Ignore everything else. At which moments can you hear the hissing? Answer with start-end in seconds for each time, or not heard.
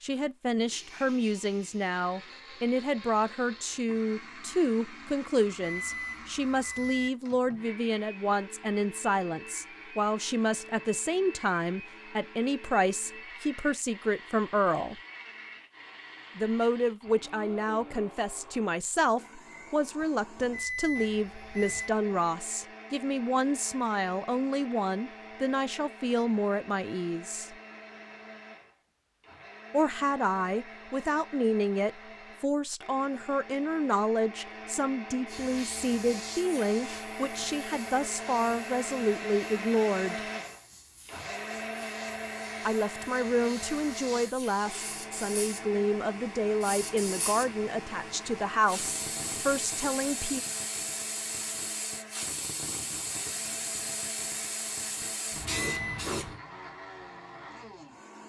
35.2-56.4.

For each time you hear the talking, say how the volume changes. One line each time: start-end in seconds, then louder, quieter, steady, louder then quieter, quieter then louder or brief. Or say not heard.
0.0-15.0 steady
16.4-27.6 steady
29.7-40.2 steady
42.6-50.4 steady.